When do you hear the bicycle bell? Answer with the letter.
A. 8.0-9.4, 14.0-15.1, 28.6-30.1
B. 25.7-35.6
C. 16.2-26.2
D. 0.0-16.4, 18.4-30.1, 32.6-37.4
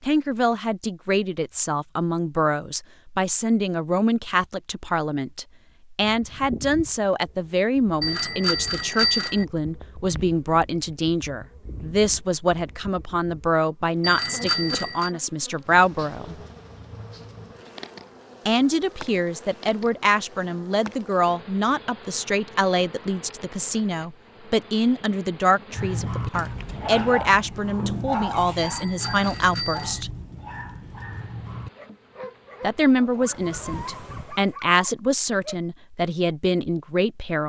A.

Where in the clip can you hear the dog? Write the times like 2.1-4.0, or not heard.
25.7-35.6.